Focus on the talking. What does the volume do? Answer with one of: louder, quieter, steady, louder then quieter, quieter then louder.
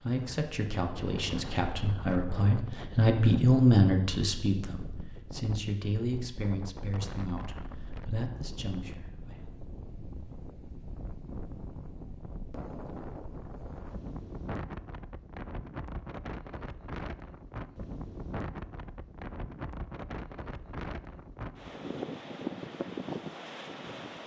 louder then quieter.